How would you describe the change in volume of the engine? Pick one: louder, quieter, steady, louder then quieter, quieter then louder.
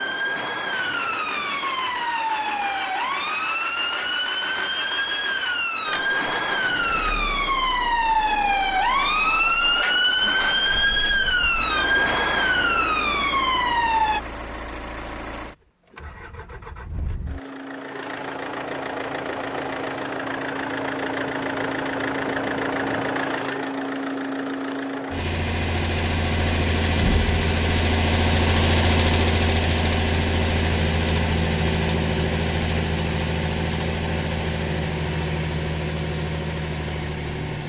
louder.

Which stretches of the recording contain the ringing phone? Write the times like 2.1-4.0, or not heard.
not heard.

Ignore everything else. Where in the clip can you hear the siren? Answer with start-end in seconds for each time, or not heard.
0.0-14.2.